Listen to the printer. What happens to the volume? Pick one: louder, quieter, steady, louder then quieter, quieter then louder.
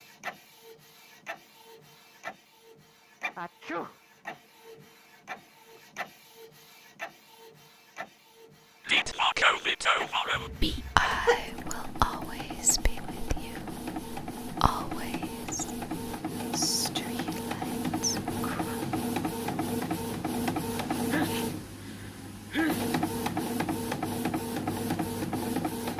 louder.